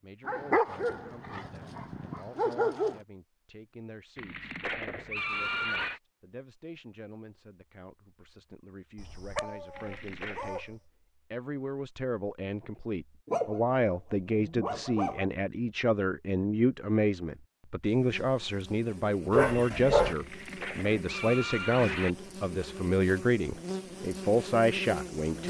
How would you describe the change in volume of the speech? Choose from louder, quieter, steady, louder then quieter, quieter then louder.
louder.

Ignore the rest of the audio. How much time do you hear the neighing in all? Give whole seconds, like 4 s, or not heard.
5 s.